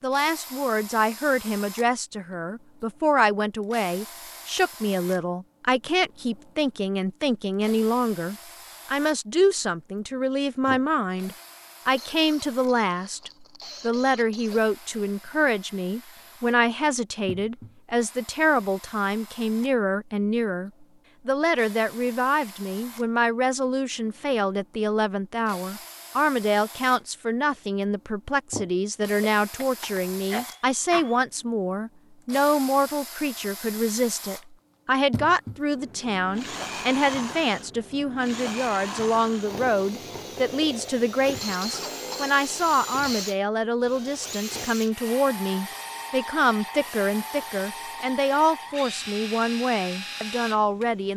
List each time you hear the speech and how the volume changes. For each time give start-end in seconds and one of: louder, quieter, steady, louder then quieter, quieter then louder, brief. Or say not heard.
0.0-51.1 steady.